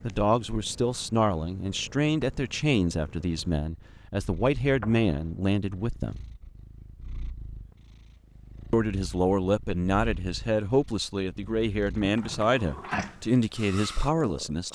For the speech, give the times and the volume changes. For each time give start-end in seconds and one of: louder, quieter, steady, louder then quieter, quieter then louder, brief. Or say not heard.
0.0-6.2 steady
8.7-14.7 steady.